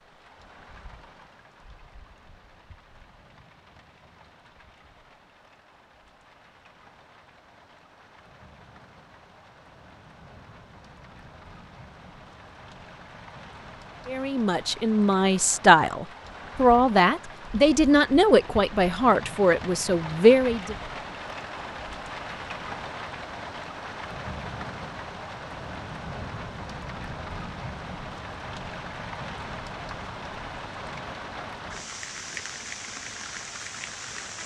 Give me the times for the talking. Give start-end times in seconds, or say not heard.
14.1-20.8.